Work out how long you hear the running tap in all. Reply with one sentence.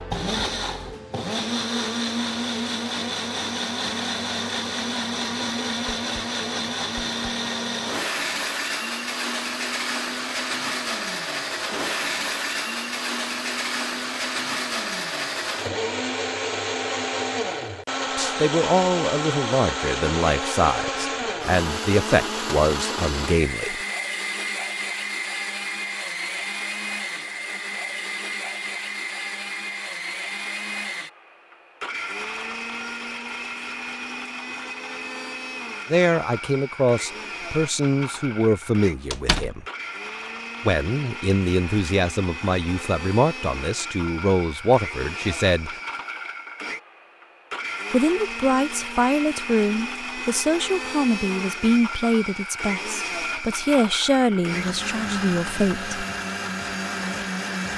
The running tap can't be heard in this clip.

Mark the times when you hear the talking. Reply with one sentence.
You can hear the talking from 18.1 to 23.8 s, from 35.9 to 39.6 s, from 40.6 to 45.8 s and from 47.9 to 56.0 s.